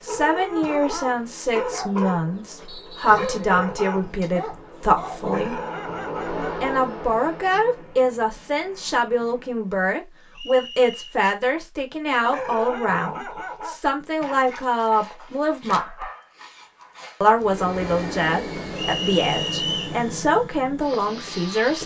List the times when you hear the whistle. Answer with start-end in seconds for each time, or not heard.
2.6-3.2, 10.3-11.2, 18.8-19.9.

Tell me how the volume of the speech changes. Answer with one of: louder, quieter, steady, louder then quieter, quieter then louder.
steady.